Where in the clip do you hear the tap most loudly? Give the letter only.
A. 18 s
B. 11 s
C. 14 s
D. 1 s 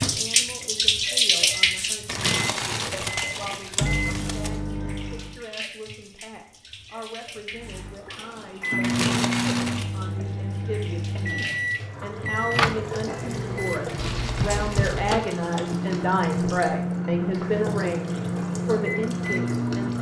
D.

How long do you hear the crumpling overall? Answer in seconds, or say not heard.
6 s.